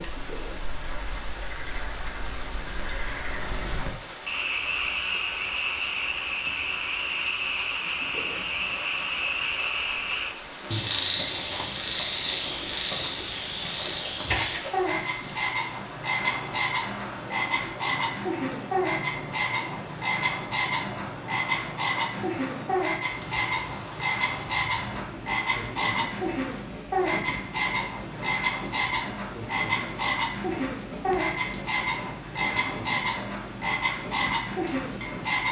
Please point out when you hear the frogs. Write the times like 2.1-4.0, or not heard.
0.0-35.4.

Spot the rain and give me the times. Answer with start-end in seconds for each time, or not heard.
0.0-35.4.